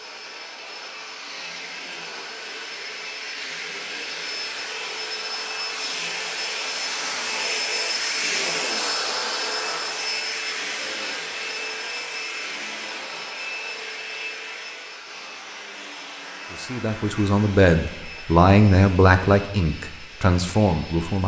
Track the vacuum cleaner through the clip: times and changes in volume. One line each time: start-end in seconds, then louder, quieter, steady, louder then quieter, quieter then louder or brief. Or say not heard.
0.0-21.2 louder then quieter.